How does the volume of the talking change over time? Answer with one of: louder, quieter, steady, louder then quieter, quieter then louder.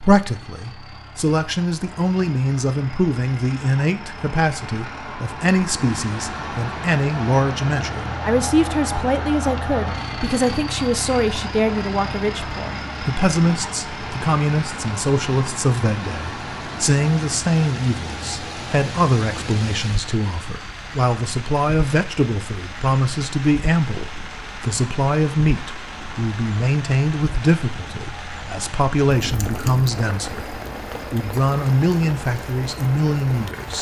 steady.